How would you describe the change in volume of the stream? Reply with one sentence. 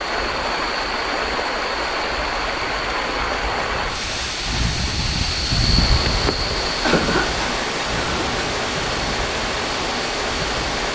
The loudness of the stream stays about the same.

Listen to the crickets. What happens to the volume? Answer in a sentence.
The loudness of the crickets goes up, then down.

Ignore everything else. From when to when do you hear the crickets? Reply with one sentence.
You can hear the crickets from 0.0 to 10.9 s.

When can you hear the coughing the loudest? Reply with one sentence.
The volume of the coughing peaks at 7 seconds.